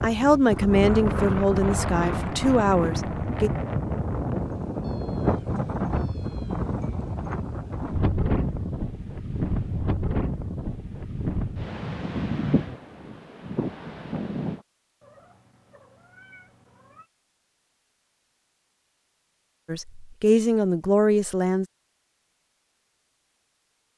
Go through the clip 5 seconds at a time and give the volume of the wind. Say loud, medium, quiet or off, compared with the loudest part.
loud, loud, loud, off, off.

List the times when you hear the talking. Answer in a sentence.
You can hear the talking from 0.0 to 3.5 s and from 19.6 to 21.6 s.